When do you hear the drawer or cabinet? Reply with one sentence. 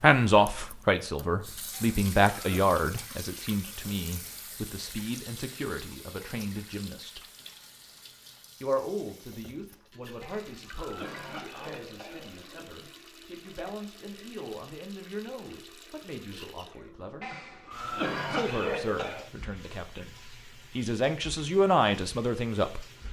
You can't hear the drawer or cabinet here.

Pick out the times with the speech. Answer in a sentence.
You can hear the speech from 0.0 to 7.2 s, from 8.6 to 17.3 s and from 18.3 to 22.9 s.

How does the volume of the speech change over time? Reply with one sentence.
The loudness of the speech goes down, then up.